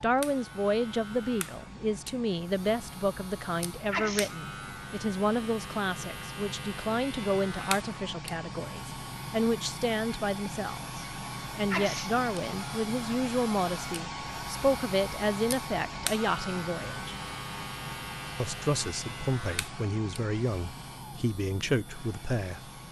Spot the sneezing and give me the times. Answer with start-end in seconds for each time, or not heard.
3.9-4.3, 11.7-12.1.